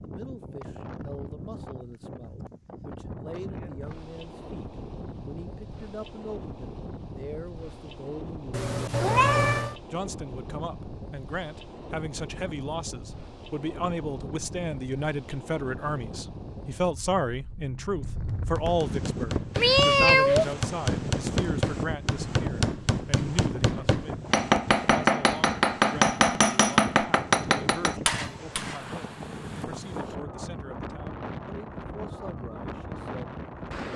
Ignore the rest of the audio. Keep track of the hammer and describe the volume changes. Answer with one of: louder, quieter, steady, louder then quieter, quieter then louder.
louder.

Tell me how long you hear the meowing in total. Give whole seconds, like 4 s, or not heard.
2 s.